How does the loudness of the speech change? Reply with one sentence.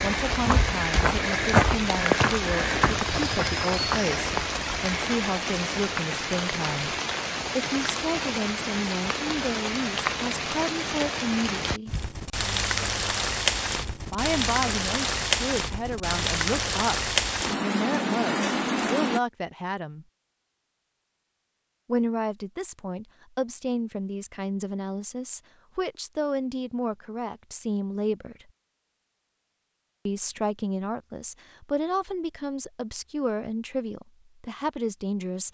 The loudness of the speech stays about the same.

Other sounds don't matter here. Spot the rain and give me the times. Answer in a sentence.
You can hear the rain from 0.0 to 19.2 s.